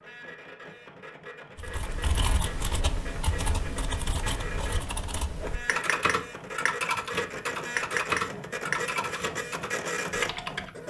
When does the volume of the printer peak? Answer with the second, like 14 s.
10 s.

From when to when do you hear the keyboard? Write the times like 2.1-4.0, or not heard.
1.6-10.7.